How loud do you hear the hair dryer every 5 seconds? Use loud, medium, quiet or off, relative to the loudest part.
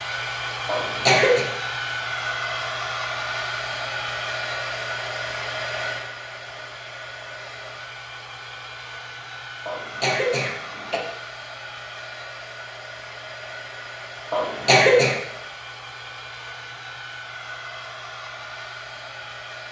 loud, medium, medium, medium.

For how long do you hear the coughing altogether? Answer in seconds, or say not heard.
3 s.